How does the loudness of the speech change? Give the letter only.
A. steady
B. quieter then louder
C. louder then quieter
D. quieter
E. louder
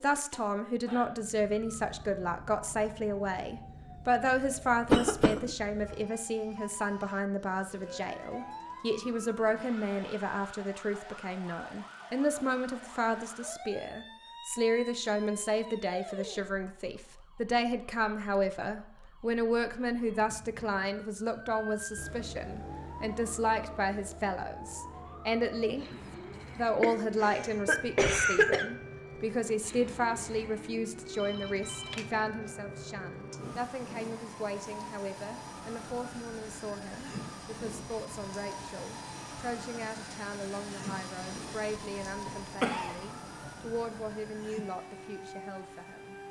D.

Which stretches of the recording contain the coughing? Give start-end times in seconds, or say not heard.
4.9-5.5, 26.8-28.6, 42.0-43.0.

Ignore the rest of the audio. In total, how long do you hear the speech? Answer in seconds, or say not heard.
46 s.